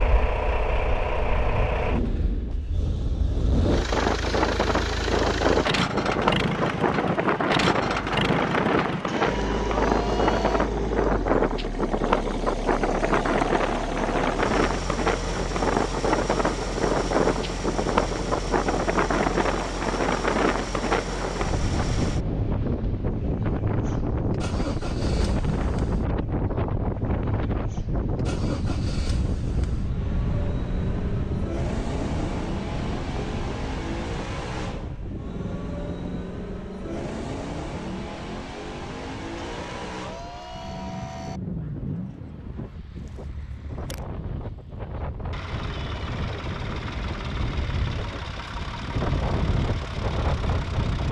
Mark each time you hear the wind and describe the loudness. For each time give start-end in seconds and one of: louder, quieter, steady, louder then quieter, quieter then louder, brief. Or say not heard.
0.0-51.0 quieter.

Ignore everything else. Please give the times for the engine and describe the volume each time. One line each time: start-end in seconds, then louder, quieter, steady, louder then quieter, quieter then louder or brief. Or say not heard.
0.0-51.0 quieter.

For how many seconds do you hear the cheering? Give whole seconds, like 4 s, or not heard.
4 s.